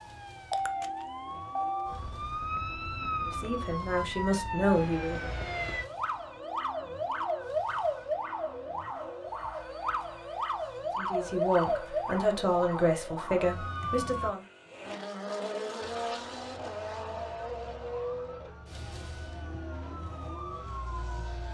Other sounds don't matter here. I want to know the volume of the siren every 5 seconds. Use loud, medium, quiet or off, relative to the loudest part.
loud, loud, loud, quiet, medium.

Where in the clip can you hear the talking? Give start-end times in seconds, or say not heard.
3.2-5.3, 10.9-14.4.